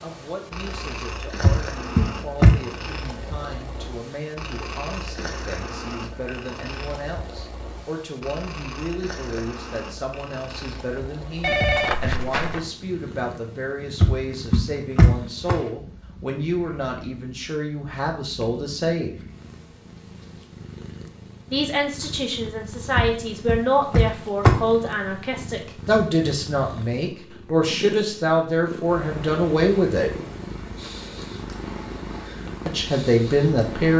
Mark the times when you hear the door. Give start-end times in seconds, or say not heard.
1.4-2.5, 14.0-15.6, 22.9-24.6.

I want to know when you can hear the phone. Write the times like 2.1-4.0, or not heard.
11.4-12.7.